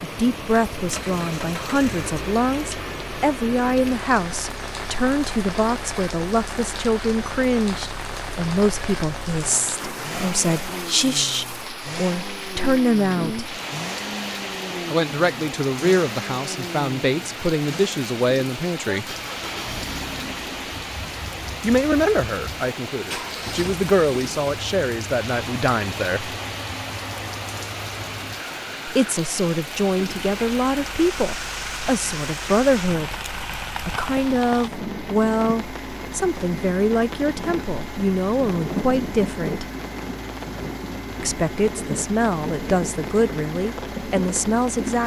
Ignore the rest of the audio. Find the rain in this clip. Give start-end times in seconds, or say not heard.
0.0-45.0.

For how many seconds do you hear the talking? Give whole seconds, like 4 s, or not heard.
37 s.